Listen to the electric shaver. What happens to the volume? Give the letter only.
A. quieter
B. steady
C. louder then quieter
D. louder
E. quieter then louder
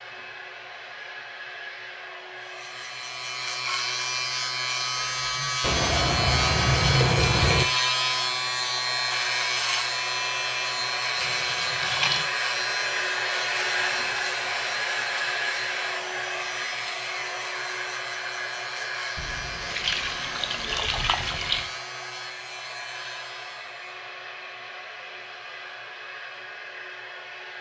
A.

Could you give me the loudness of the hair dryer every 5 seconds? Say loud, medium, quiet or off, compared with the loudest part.
medium, medium, loud, loud, medium, medium.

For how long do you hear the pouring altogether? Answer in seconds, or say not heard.
6 s.